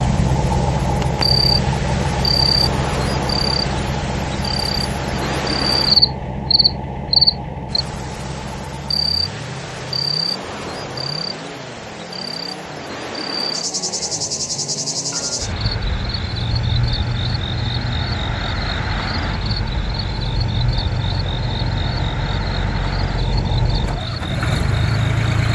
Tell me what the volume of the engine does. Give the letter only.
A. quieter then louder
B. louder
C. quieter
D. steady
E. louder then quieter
A.